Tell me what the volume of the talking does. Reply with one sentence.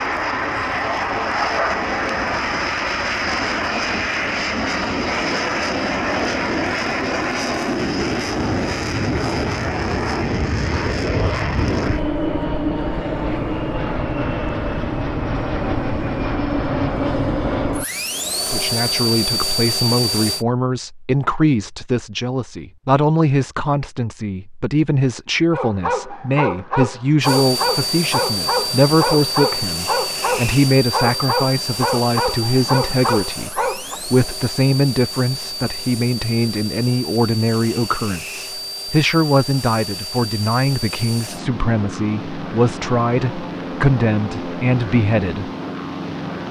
The loudness of the talking stays about the same.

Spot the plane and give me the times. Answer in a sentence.
You can hear the plane from 0.0 to 20.4 s and from 27.2 to 46.4 s.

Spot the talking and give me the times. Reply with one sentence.
You can hear the talking from 18.4 to 45.5 s.